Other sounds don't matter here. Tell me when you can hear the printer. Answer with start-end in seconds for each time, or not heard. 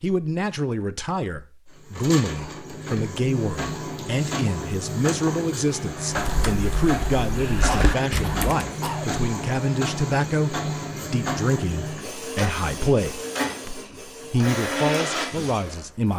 1.8-16.1.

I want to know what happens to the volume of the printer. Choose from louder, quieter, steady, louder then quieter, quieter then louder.
steady.